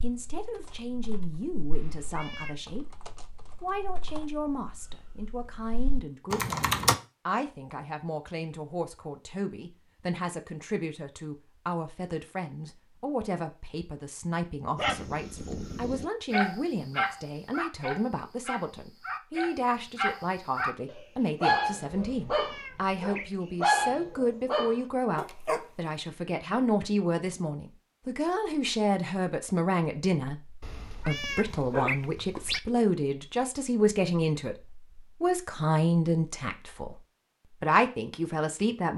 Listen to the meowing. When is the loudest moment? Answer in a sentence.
The volume of the meowing peaks at 32 seconds.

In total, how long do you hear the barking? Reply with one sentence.
The barking can be heard for 11 seconds in total.